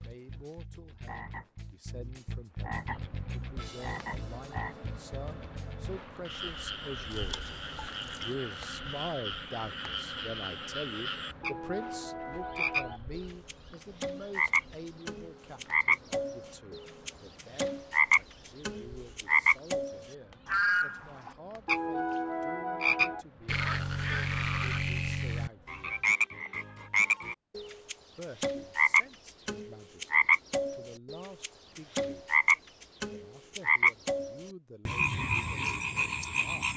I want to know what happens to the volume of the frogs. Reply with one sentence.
The volume of the frogs goes up.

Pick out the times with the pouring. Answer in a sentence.
The pouring can be heard from 7.1 to 8.3 s.